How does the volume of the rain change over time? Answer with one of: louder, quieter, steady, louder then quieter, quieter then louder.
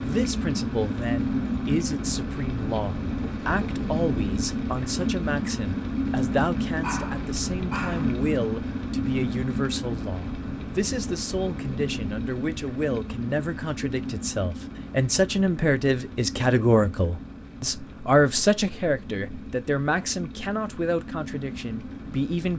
quieter.